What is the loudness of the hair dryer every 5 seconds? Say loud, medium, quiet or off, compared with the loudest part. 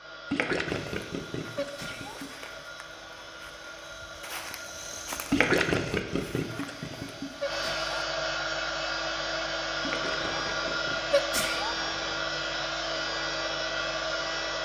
quiet, loud, loud.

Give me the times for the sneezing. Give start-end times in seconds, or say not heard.
1.6-2.1, 7.4-7.9, 11.1-11.8.